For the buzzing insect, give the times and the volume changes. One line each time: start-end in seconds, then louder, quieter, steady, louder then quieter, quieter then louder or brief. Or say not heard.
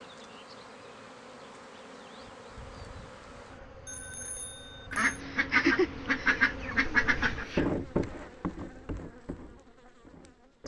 0.0-10.6 louder then quieter.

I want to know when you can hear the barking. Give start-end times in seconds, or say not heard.
not heard.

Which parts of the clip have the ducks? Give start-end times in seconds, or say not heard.
4.9-7.7.